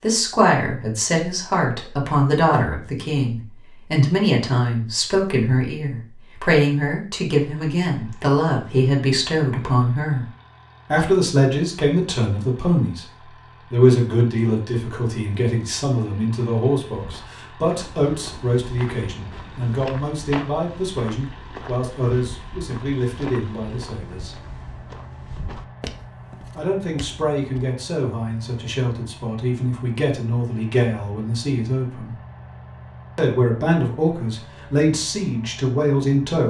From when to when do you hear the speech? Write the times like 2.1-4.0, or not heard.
0.0-10.2, 10.9-13.1, 13.7-24.4, 26.6-32.1, 33.1-36.4.